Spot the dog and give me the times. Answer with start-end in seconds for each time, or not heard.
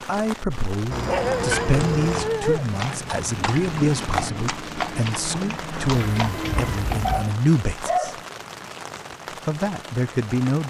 1.1-2.6, 7.0-8.2.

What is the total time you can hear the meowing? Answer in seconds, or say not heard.
3 s.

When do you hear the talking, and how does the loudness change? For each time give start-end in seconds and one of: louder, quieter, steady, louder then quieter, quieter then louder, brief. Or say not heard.
0.1-8.2 steady
9.4-10.6 brief.